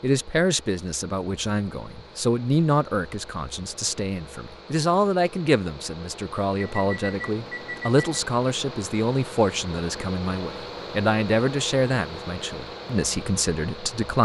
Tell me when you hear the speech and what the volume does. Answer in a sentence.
The speech can be heard from 0.0 to 14.2 s, at a steady volume.